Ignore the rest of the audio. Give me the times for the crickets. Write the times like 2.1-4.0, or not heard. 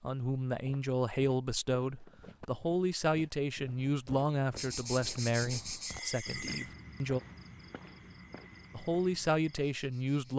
4.5-10.3.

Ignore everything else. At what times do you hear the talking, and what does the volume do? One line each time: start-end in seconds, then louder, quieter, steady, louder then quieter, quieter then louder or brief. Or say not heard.
0.0-7.2 quieter
8.7-10.3 brief.